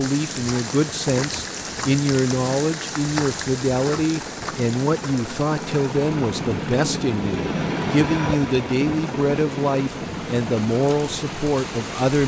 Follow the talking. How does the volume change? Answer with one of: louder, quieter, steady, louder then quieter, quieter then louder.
steady.